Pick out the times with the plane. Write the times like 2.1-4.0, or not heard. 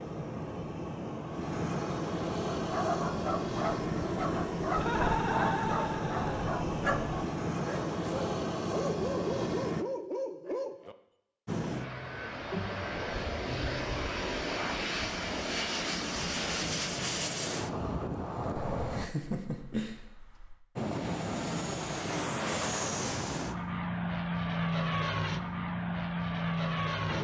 0.0-9.8, 11.4-19.1, 20.8-27.1.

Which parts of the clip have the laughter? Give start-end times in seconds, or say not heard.
4.7-6.5, 18.8-20.6.